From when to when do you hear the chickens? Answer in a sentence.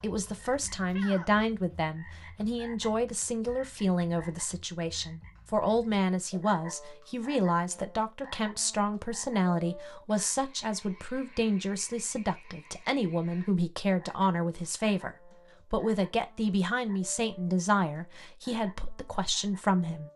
The chickens can't be heard in this clip.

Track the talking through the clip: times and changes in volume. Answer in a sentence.
The talking can be heard from 0.0 to 20.1 s, at a steady volume.